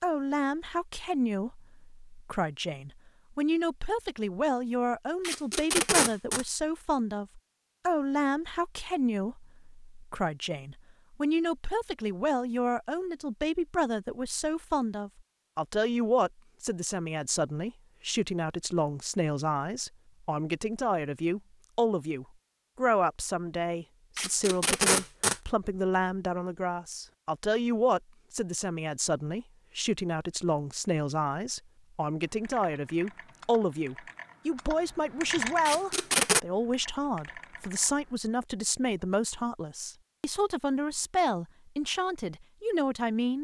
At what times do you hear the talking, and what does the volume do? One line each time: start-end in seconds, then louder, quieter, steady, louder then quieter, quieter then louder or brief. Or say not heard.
0.0-43.3 steady.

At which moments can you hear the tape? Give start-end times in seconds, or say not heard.
5.2-6.5, 24.1-25.4, 35.6-36.4.